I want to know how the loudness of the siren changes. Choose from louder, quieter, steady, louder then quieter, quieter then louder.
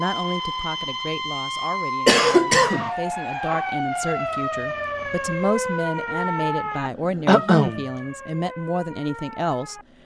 quieter.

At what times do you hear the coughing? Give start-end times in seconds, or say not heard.
2.0-2.9, 7.2-7.8.